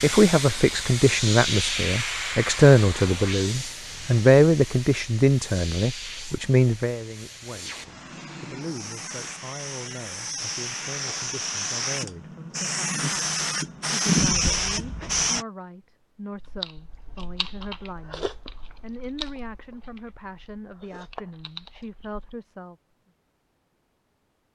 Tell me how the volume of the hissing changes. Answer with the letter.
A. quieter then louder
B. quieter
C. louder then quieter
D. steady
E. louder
A.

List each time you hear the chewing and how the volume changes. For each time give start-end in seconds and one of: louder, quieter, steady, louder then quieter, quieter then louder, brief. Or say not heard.
16.4-22.4 quieter then louder.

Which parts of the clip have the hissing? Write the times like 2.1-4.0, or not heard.
0.0-15.4.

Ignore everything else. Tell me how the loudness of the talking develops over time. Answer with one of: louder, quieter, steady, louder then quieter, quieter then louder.
quieter.